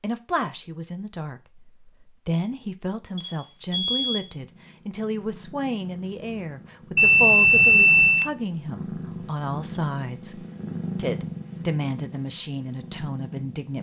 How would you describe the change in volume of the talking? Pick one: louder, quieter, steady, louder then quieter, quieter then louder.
steady.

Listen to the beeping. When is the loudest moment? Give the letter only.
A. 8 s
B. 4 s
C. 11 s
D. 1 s
A.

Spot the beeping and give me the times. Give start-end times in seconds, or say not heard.
3.2-4.3, 7.0-8.3.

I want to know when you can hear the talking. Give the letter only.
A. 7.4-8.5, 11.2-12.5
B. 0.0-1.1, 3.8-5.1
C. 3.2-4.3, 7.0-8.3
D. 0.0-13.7
D.